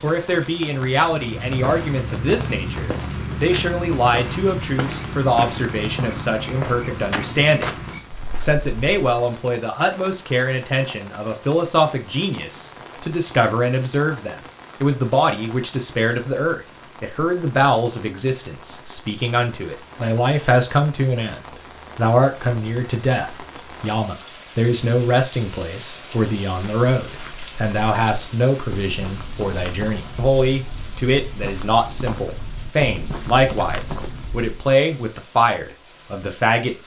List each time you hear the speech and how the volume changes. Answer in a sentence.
You can hear the speech from 0.0 to 36.8 s, at a steady volume.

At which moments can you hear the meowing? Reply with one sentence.
You can't hear the meowing here.